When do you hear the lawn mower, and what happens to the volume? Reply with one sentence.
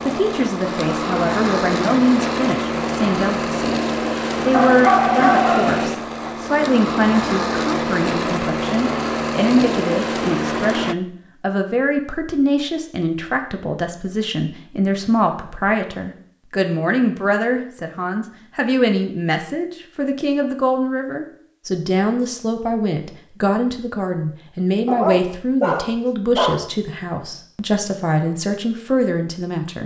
The lawn mower can be heard from 0.0 to 10.9 s, at a steady volume.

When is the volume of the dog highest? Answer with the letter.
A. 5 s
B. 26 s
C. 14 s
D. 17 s
A.